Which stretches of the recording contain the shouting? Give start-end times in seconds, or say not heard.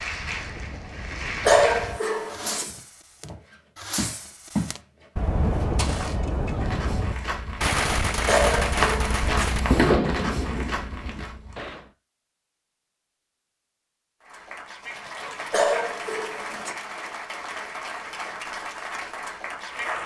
not heard.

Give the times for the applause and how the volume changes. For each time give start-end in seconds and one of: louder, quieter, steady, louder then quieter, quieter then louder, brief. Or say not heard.
0.0-1.9 brief
14.2-20.0 steady.